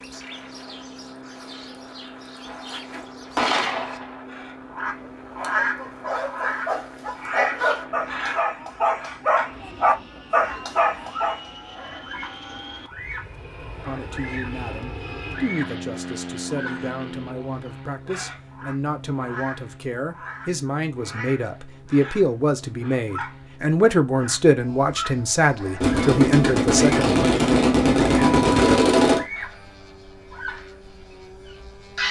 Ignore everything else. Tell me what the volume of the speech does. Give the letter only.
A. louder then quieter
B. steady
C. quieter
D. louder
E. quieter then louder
D.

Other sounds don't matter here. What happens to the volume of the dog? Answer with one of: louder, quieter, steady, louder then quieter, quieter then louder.
louder.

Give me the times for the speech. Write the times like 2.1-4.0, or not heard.
13.8-27.2.